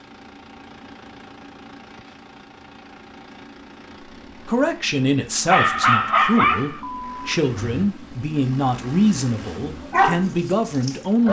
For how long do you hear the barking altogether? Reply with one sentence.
You can hear the barking for 4 seconds altogether.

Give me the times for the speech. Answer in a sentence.
You can hear the speech from 4.5 to 11.2 s.